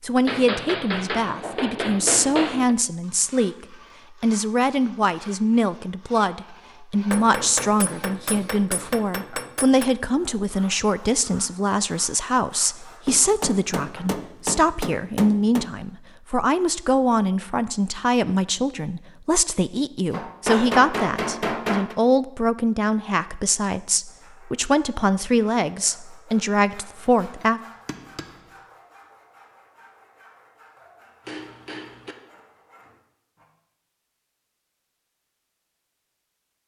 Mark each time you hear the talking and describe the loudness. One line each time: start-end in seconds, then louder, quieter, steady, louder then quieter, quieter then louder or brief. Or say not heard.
0.0-27.6 steady.